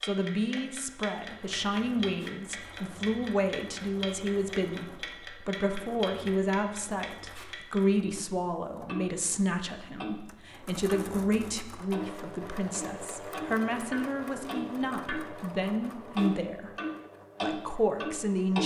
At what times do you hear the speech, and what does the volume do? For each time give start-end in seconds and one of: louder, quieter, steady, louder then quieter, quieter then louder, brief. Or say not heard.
0.0-16.7 steady
17.4-18.6 brief.